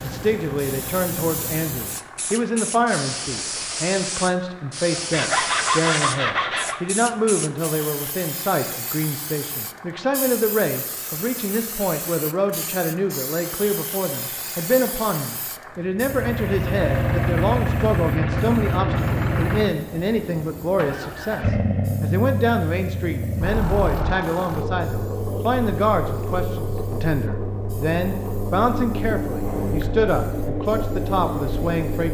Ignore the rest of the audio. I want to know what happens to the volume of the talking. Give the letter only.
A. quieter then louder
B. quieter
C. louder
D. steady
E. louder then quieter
D.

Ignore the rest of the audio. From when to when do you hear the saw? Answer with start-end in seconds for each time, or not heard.
5.1-6.8.